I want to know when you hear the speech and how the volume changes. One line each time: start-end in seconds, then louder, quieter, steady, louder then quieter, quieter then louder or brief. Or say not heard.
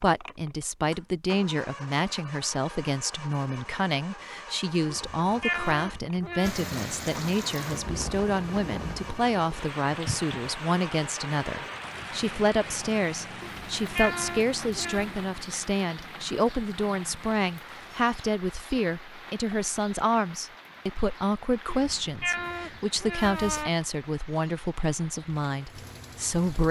0.0-26.6 steady.